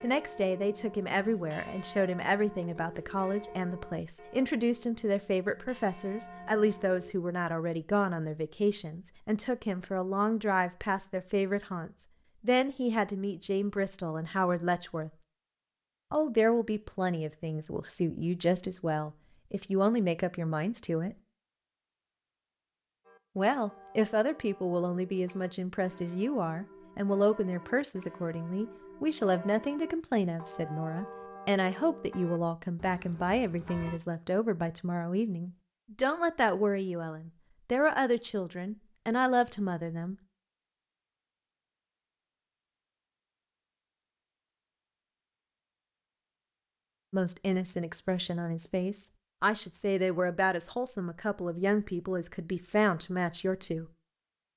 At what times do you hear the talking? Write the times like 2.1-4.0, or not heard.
0.0-15.1, 16.1-21.1, 23.4-40.1, 47.1-53.9.